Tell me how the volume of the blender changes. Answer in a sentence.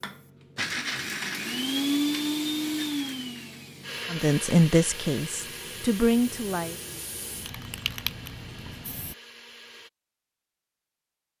The volume of the blender goes down.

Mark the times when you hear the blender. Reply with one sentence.
The blender can be heard from 0.0 to 9.9 s.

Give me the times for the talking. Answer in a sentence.
The talking can be heard from 4.1 to 6.8 s.